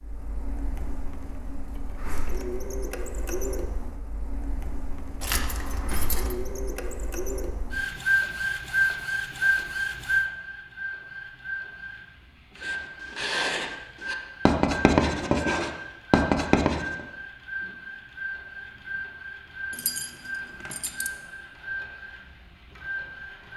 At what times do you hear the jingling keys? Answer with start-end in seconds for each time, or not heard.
5.2-6.3, 19.7-21.1.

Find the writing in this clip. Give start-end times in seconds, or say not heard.
12.6-17.0.